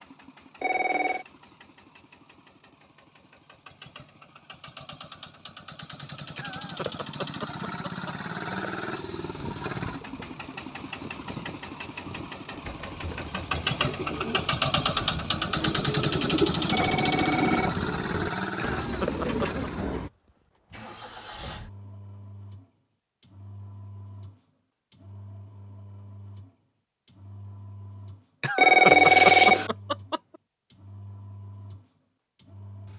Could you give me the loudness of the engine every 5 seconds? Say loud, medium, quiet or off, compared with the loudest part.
quiet, medium, loud, loud, quiet, quiet, quiet.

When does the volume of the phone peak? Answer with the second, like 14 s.
29 s.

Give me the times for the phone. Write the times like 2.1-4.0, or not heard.
0.6-1.2, 16.7-17.8, 28.6-29.7.